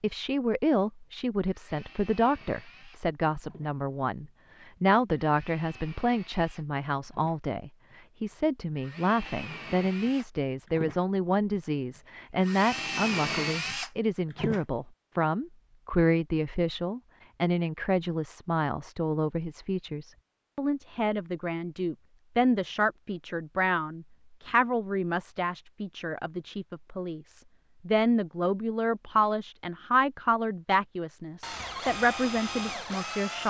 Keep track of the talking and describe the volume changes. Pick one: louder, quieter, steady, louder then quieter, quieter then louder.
steady.